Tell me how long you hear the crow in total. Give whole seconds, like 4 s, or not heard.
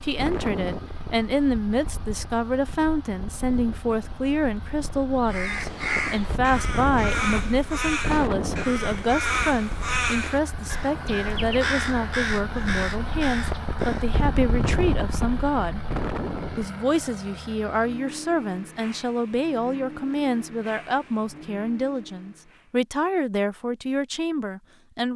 9 s.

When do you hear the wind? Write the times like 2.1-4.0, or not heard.
0.0-16.7.